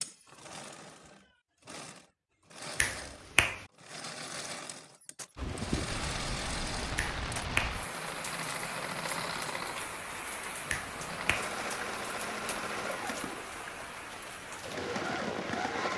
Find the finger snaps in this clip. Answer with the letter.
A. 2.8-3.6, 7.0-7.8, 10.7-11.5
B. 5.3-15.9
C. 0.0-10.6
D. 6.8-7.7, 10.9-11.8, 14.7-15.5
A.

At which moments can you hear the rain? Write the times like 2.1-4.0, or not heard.
5.3-15.9.